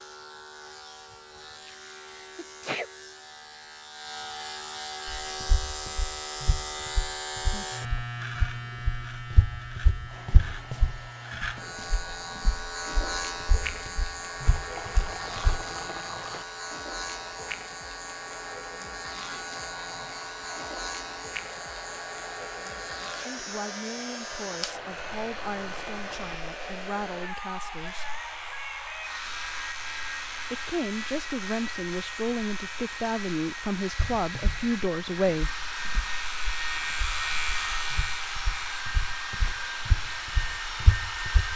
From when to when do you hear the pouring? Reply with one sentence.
You can hear the pouring from 14.5 to 16.4 s and from 24.6 to 26.4 s.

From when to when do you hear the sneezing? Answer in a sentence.
You can hear the sneezing from 1.6 to 2.9 s.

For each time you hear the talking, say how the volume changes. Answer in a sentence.
The talking can be heard from 23.2 to 28.1 s, at a steady volume; and from 30.5 to 35.5 s, at a steady volume.